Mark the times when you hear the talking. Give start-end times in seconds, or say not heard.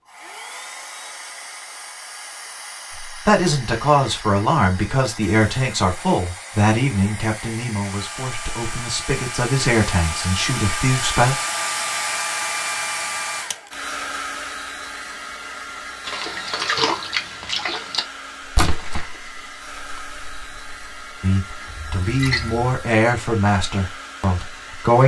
3.0-11.4, 21.2-25.0.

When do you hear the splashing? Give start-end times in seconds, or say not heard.
16.1-22.6.